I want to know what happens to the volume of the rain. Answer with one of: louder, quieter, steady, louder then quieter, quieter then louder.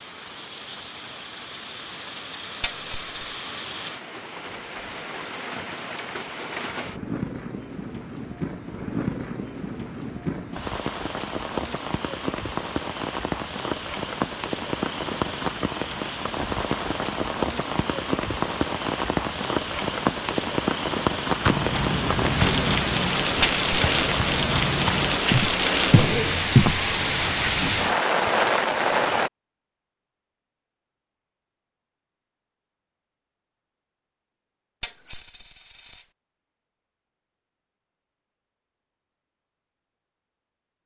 louder.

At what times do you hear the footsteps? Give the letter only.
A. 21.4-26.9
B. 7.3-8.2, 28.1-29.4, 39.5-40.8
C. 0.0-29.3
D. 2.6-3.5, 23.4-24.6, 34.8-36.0
A.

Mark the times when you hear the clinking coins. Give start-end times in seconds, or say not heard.
2.6-3.5, 23.4-24.6, 34.8-36.0.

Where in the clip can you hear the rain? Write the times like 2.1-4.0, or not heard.
0.0-29.3.